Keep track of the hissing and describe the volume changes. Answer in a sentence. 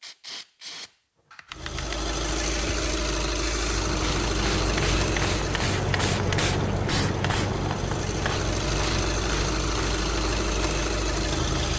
The loudness of the hissing goes up, then down.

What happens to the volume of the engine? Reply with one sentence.
The volume of the engine goes down, then up.